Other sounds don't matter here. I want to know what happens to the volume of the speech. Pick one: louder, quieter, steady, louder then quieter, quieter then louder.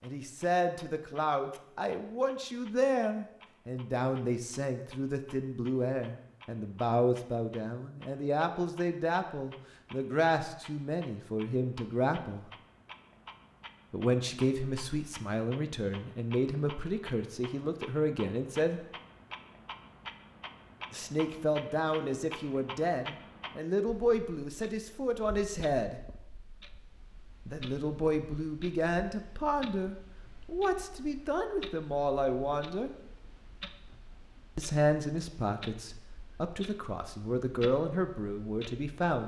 steady.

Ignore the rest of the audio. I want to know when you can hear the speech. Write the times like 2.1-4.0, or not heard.
0.0-12.5, 13.9-18.9, 20.9-26.0, 27.4-33.0, 34.5-39.2.